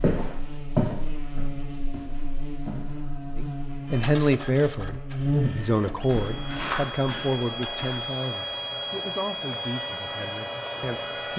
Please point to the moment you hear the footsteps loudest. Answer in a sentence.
The loudest moment of the footsteps is at 1 second.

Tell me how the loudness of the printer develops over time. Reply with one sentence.
The volume of the printer goes up.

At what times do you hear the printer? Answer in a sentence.
The printer can be heard from 3.9 to 11.3 s.